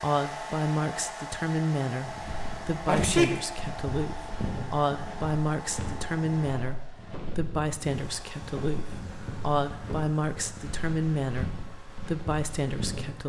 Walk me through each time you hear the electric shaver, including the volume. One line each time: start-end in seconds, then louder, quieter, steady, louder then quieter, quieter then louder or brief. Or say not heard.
not heard.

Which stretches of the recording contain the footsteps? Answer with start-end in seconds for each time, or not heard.
2.0-13.1.